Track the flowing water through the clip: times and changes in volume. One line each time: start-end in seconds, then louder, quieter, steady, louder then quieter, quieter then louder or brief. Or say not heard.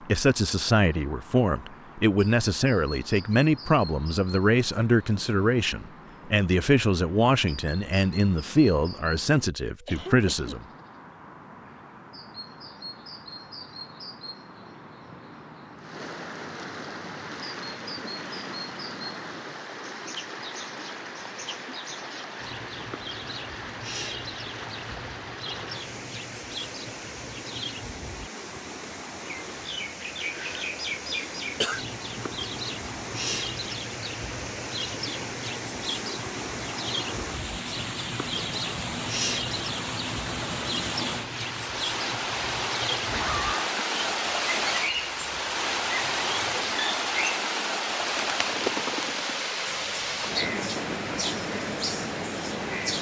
15.8-52.9 louder.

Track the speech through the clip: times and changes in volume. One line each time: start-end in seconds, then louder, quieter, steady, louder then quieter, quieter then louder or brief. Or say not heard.
0.1-10.7 steady.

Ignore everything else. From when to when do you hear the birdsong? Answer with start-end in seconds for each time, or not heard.
0.0-52.9.